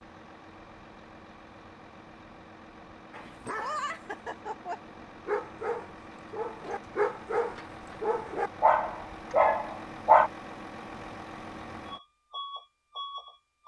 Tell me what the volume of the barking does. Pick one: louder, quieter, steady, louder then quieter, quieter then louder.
louder.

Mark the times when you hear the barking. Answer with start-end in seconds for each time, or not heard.
3.1-10.3.